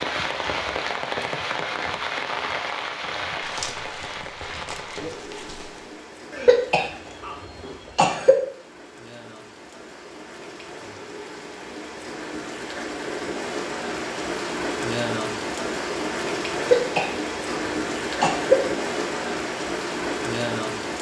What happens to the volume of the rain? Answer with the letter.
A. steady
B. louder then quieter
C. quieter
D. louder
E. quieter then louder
E.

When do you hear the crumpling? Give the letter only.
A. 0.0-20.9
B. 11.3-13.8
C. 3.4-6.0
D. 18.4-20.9
C.